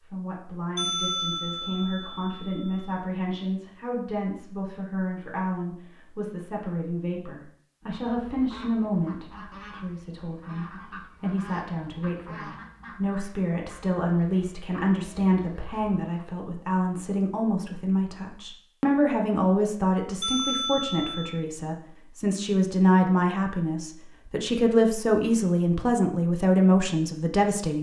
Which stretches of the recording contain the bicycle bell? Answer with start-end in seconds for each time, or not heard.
0.8-3.0, 20.2-21.4.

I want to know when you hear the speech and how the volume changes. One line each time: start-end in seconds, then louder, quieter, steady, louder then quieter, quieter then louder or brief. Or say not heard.
0.1-27.7 louder.